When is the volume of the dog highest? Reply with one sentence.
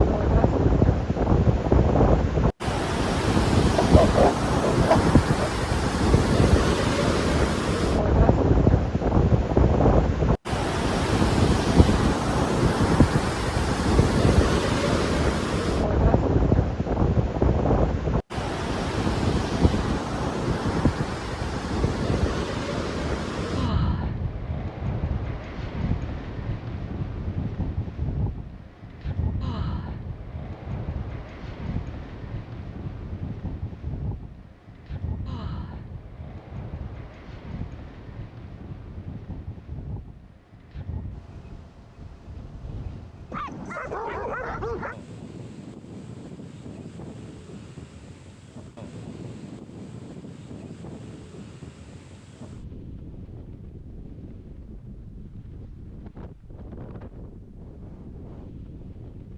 The loudest moment of the dog is at 4 seconds.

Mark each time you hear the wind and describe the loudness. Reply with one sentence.
You can hear the wind from 0.0 to 59.3 s, getting quieter.